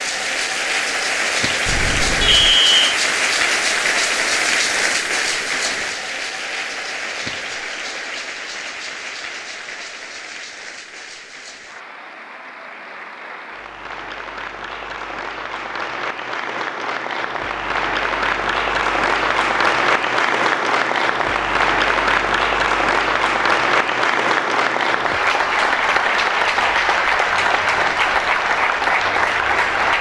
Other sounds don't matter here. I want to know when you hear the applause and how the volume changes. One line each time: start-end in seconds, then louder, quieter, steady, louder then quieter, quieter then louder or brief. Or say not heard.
0.0-29.9 quieter then louder.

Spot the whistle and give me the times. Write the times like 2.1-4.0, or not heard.
2.2-3.0.